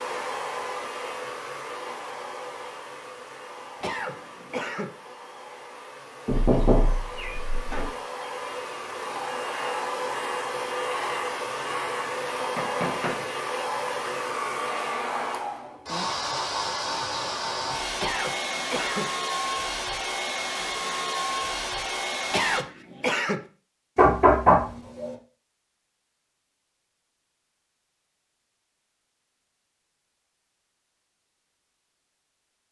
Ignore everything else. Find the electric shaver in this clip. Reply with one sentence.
The electric shaver can't be heard in this clip.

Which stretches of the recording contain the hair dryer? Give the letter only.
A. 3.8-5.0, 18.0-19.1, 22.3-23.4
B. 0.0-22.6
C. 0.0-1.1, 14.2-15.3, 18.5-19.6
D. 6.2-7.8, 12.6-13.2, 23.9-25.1
B.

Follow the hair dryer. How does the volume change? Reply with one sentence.
The loudness of the hair dryer goes up.